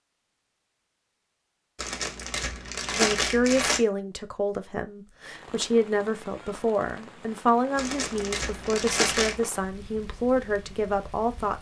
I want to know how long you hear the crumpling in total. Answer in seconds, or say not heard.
4 s.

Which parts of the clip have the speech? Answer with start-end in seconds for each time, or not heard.
2.9-11.5.